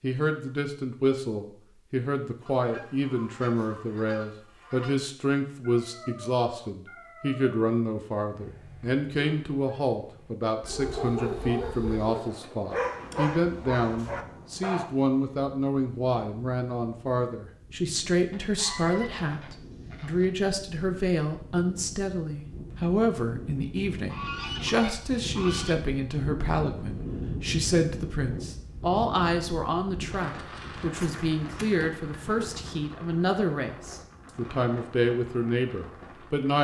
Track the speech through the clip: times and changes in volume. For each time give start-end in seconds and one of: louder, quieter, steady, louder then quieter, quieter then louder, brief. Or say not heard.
0.0-36.5 steady.